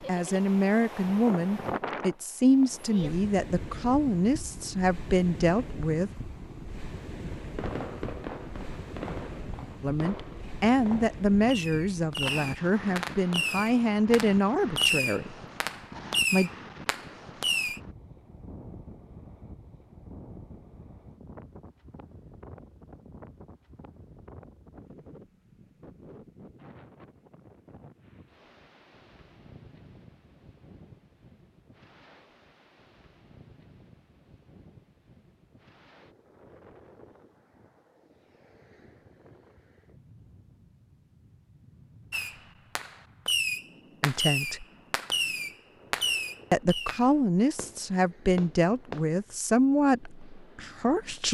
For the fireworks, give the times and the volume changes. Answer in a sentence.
You can hear the fireworks from 7.5 to 17.8 s, getting louder; and from 42.1 to 49.2 s, getting quieter.